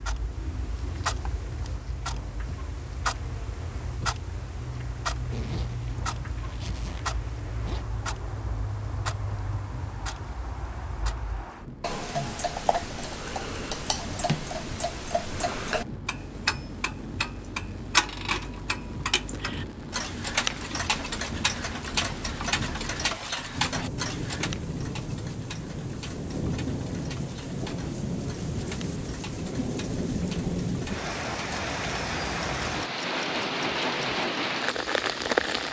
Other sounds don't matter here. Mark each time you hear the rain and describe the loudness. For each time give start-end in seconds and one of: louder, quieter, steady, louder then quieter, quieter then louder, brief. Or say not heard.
0.0-35.6 louder.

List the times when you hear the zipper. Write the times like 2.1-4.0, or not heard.
5.2-7.8.